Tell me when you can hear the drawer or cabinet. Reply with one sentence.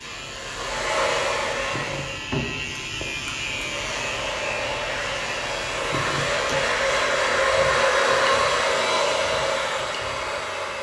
You can hear the drawer or cabinet from 1.7 to 3.0 s and from 5.9 to 6.6 s.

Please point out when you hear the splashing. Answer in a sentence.
The splashing can't be heard in this clip.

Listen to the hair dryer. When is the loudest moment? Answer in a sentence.
The volume of the hair dryer peaks at 8 seconds.